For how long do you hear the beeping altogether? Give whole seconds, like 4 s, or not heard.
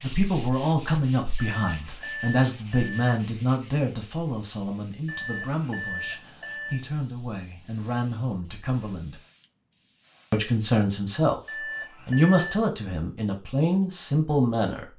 5 s.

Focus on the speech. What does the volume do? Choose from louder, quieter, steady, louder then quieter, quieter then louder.
quieter then louder.